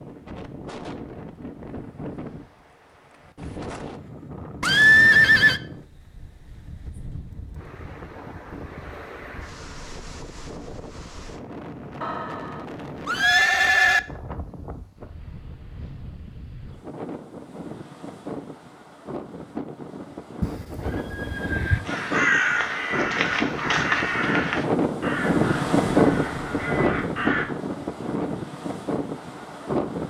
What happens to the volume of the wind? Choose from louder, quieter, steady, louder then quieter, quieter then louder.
louder.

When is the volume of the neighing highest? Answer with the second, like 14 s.
5 s.